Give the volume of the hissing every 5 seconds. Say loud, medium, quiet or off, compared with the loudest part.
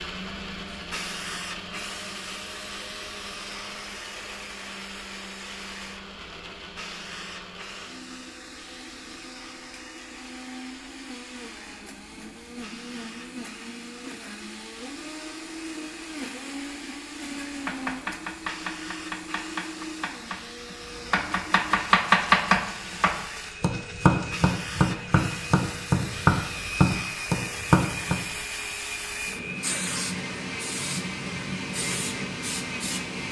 medium, medium, quiet, medium, medium, loud, loud.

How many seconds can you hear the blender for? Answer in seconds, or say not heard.
33 s.